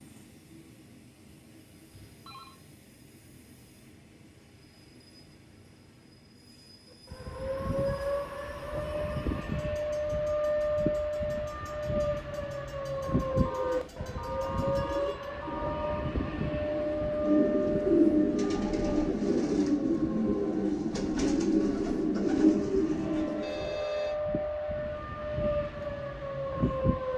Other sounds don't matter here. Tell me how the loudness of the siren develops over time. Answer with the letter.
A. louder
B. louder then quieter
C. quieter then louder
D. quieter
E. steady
C.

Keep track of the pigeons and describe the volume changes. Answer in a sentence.
The loudness of the pigeons goes up.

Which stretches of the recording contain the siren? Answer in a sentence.
You can hear the siren from 7.1 to 27.1 s.